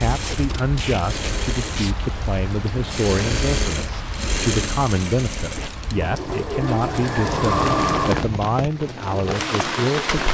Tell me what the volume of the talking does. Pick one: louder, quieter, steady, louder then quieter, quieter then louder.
steady.